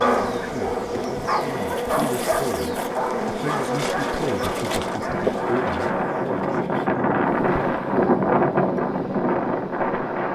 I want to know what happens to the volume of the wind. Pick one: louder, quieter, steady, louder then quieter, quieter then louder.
louder.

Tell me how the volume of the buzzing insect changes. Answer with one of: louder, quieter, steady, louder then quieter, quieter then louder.
quieter.